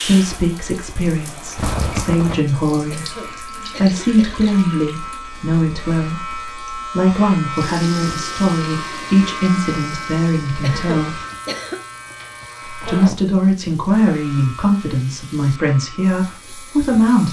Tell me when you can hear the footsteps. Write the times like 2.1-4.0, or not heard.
not heard.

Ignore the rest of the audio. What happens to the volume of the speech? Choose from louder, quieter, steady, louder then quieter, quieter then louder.
steady.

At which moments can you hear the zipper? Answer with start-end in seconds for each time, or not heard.
1.6-2.4, 11.1-13.2.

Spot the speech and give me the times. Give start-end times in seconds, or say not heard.
0.0-11.2, 12.7-17.2.